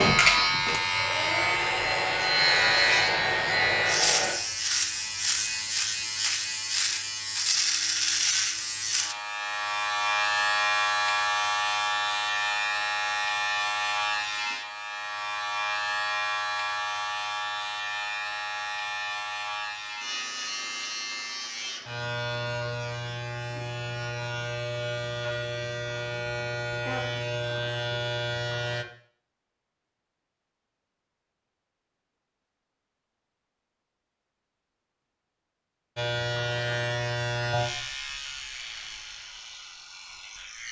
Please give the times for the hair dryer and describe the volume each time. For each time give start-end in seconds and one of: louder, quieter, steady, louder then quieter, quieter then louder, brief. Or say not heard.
0.0-4.3 louder.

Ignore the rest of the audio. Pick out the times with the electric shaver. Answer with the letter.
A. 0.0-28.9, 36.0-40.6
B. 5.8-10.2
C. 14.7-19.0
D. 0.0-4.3
A.